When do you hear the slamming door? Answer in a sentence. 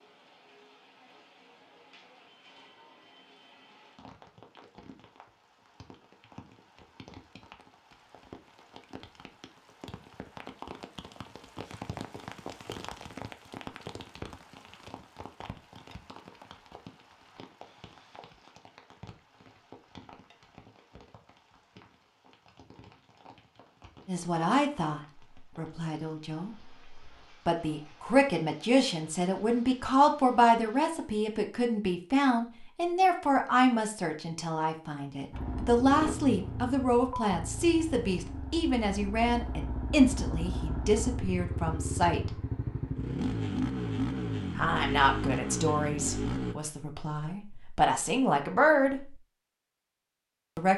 You can't hear the slamming door here.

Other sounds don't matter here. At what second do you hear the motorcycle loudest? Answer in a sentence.
The volume of the motorcycle peaks at 44 seconds.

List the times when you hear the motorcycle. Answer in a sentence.
You can hear the motorcycle from 35.3 to 46.5 s.